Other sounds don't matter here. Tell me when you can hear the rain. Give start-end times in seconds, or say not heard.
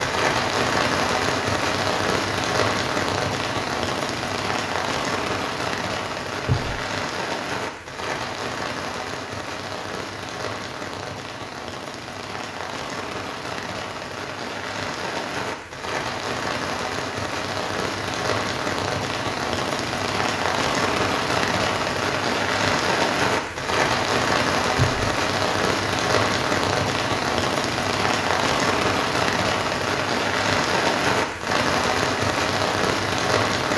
0.0-33.7.